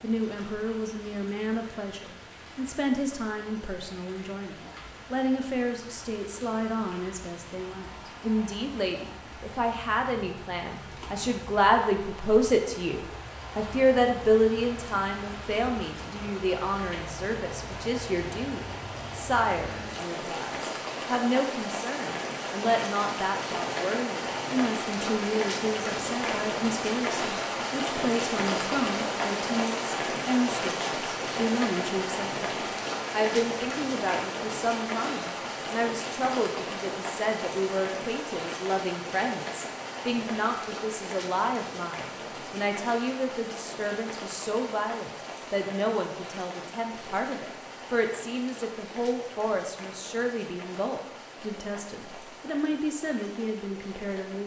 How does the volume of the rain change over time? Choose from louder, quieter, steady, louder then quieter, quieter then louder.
louder then quieter.